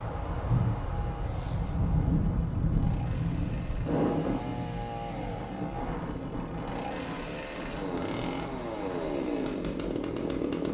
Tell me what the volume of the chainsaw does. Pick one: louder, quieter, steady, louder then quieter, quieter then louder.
louder.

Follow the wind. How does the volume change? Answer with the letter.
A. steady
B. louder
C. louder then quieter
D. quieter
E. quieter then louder
D.